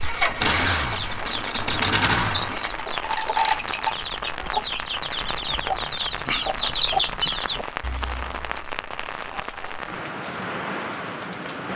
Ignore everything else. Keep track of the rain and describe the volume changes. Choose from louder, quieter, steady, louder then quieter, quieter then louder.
steady.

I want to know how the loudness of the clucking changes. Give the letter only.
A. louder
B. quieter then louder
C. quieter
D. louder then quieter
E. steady
A.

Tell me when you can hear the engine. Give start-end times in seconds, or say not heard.
0.0-2.8.